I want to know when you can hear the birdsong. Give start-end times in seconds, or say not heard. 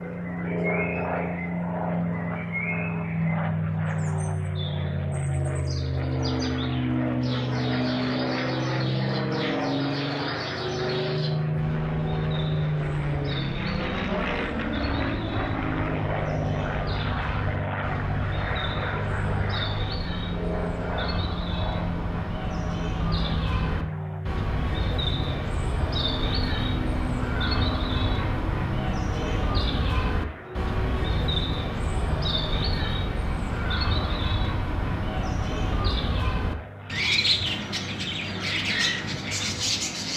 0.2-40.1.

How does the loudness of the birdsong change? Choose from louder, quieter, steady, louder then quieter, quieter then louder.
louder.